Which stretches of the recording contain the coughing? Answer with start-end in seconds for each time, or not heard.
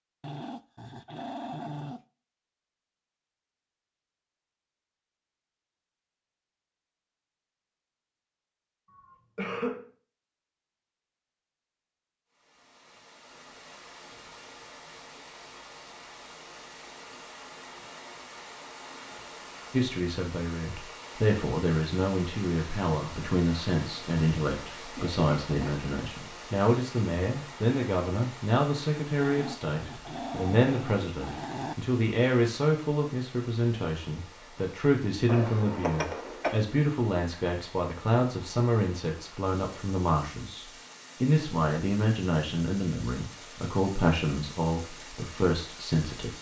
8.9-9.8, 24.9-25.8, 35.2-36.5.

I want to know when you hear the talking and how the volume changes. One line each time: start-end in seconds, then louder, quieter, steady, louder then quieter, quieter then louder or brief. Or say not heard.
19.7-46.3 steady.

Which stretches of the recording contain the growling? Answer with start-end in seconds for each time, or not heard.
0.2-2.0, 29.2-31.8.